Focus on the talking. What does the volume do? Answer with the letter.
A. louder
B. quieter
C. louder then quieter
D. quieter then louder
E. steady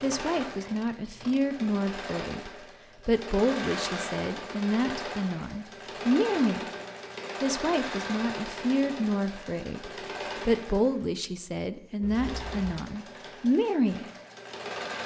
E.